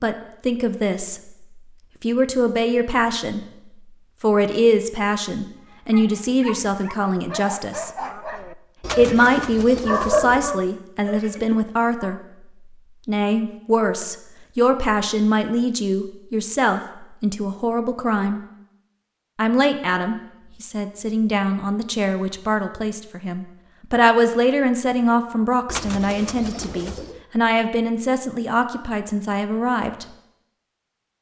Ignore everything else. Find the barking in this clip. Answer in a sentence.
The barking can be heard from 5.7 to 12.2 s.